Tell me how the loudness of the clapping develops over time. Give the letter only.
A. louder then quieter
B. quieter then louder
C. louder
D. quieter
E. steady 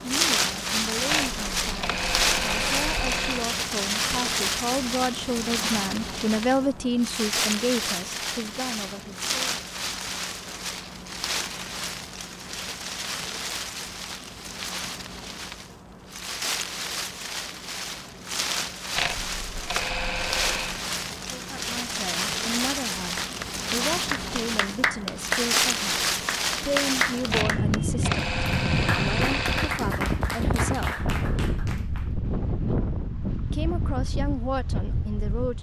D.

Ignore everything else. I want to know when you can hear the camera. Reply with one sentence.
The camera can be heard from 1.1 to 3.5 s, from 18.9 to 20.8 s and from 27.3 to 29.8 s.